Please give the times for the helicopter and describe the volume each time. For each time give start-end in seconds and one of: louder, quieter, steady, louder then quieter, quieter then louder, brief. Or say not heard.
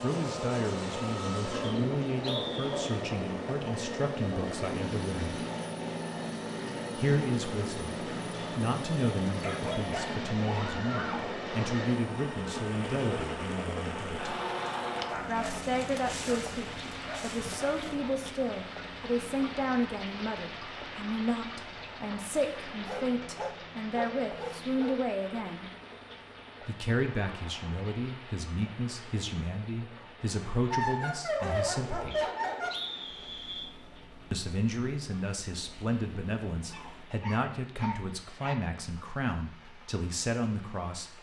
0.0-37.2 quieter.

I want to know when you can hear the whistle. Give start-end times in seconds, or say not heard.
1.6-3.0, 32.1-33.7.